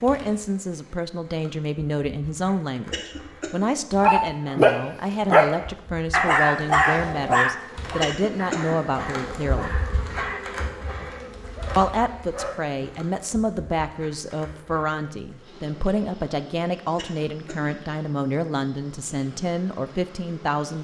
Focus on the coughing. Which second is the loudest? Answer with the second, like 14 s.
8 s.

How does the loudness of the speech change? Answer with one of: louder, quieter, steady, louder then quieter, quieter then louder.
steady.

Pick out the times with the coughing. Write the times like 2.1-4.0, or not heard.
2.9-3.7, 8.0-8.8, 16.9-17.8.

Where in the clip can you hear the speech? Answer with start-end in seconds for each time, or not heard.
0.0-9.8, 11.8-20.7.